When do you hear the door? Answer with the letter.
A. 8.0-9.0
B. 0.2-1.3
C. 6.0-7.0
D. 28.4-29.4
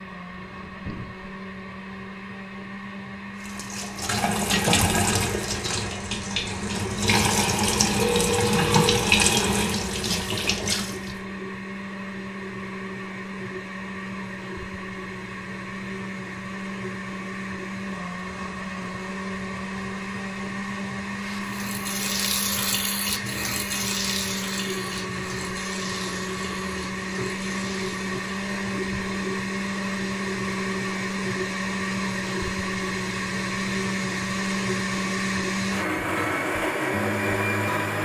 B.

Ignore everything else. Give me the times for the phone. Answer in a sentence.
The phone can be heard from 8.0 to 9.0 s.